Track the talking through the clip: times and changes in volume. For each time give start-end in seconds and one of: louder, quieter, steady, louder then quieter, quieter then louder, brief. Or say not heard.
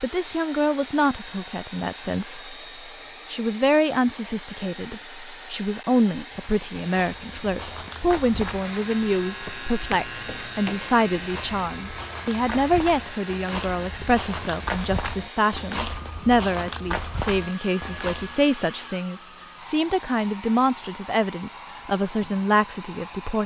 0.0-2.5 brief
3.3-23.4 steady.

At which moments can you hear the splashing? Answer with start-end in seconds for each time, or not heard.
not heard.